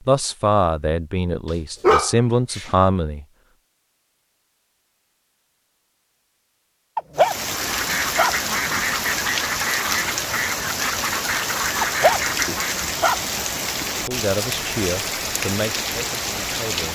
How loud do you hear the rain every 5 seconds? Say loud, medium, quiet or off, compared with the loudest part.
off, loud, loud, loud.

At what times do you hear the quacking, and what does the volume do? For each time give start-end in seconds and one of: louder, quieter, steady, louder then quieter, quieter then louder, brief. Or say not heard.
7.5-13.0 steady.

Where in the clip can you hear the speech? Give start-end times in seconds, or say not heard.
0.1-3.2, 14.1-16.9.